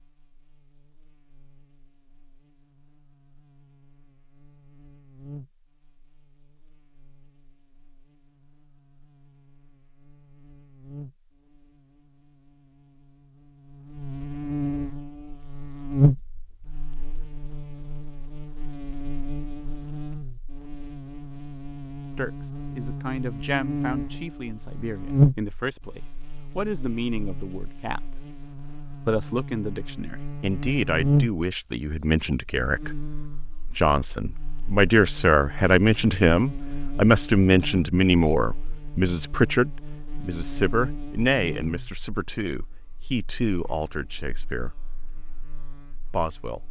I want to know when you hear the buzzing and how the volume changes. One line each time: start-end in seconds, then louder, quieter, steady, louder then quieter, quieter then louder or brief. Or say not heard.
0.0-46.6 louder then quieter.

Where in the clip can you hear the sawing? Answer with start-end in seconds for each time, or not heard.
not heard.